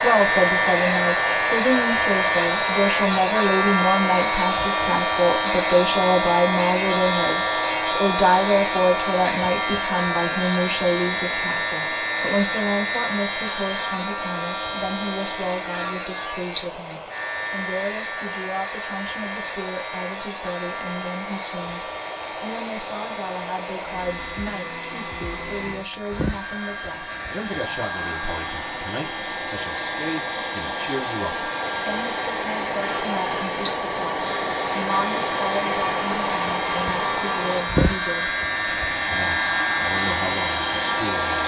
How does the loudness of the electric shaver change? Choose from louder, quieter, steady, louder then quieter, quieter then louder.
quieter then louder.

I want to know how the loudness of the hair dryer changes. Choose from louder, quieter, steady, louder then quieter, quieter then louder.
quieter then louder.